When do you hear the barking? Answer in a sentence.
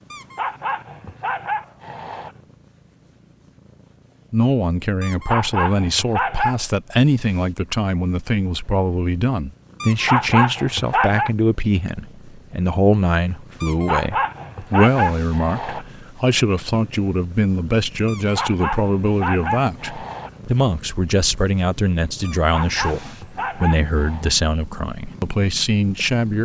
You can hear the barking from 0.1 to 2.4 s, from 5.0 to 6.6 s, from 9.8 to 11.3 s, from 13.6 to 15.8 s, from 18.1 to 20.4 s and from 22.2 to 24.3 s.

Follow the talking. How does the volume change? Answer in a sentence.
The volume of the talking stays about the same.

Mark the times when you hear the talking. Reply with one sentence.
You can hear the talking from 4.3 to 26.4 s.